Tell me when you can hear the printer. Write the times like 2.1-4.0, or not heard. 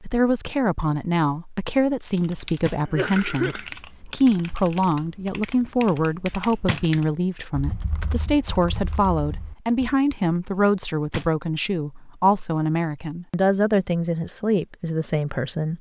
not heard.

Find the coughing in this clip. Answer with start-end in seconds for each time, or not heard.
2.6-3.7.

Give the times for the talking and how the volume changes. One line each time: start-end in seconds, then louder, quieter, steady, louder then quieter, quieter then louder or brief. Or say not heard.
0.0-15.7 steady.